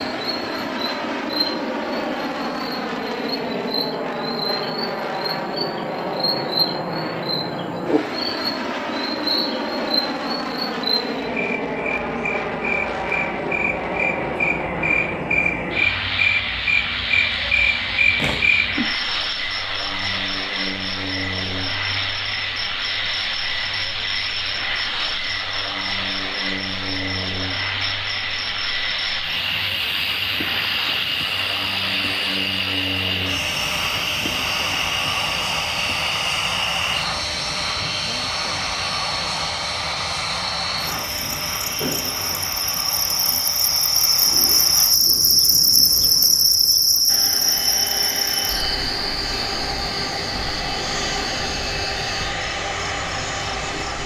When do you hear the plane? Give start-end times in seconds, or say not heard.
0.0-54.0.